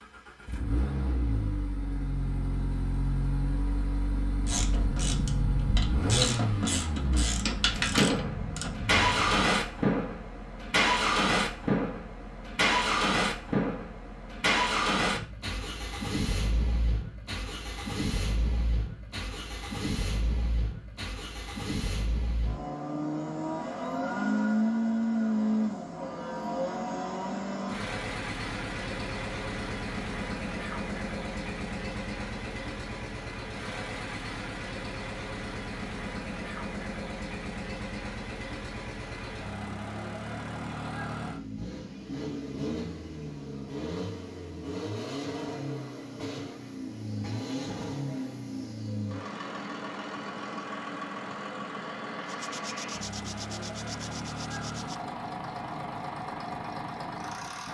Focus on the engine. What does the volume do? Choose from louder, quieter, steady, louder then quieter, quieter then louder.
quieter.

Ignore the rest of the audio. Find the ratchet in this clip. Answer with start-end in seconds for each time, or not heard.
4.4-9.5.